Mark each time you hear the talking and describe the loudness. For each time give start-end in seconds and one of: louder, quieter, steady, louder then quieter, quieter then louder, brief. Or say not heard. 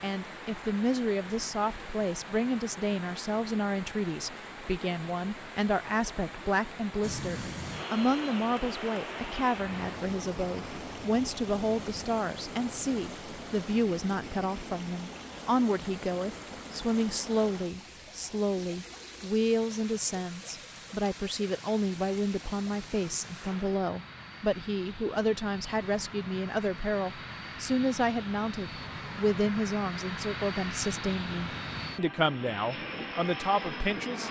0.0-34.2 steady.